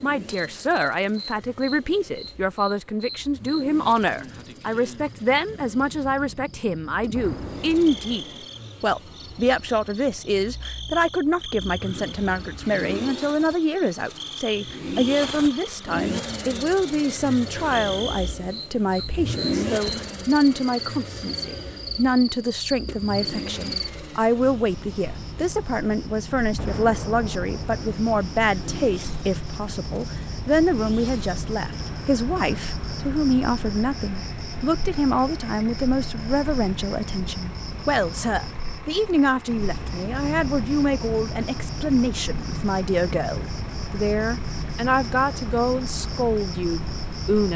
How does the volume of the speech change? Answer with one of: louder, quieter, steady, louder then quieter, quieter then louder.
steady.